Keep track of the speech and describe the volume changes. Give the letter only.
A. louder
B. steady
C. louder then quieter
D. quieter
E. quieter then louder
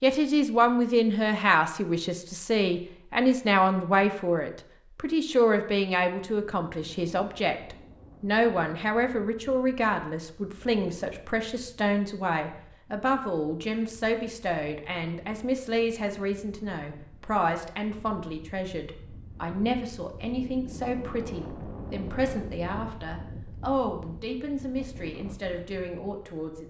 D.